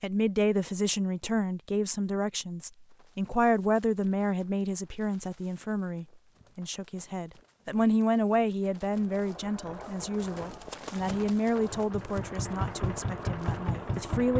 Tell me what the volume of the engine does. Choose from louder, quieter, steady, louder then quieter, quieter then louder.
louder.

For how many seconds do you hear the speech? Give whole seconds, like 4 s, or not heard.
14 s.